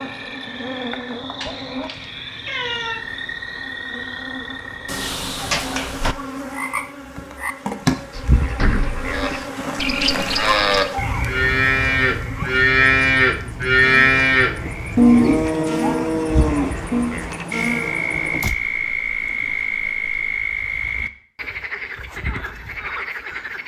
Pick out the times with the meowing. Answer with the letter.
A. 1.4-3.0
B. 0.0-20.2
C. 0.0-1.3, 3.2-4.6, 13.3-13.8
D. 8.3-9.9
A.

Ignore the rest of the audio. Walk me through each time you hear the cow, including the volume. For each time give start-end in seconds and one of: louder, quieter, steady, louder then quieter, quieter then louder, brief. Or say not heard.
9.1-17.1 louder then quieter.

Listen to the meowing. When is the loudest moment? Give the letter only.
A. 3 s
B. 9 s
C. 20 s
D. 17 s
A.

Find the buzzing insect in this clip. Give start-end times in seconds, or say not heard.
0.0-20.2.